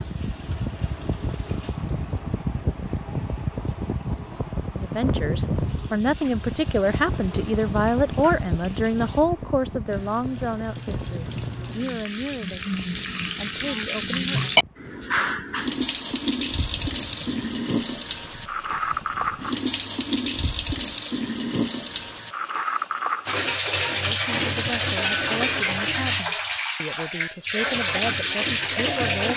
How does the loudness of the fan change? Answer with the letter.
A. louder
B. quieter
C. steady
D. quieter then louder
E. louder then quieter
B.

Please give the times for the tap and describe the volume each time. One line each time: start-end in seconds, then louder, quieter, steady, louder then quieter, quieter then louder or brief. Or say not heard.
0.0-29.3 louder.